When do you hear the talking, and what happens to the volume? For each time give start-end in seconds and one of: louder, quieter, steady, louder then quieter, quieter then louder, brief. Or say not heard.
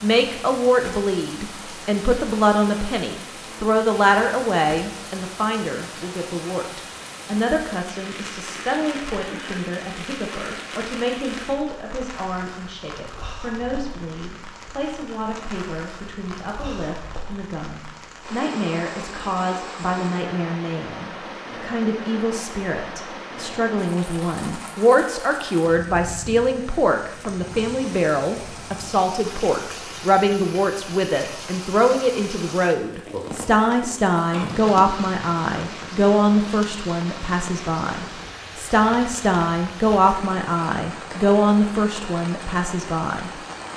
0.0-43.4 quieter then louder.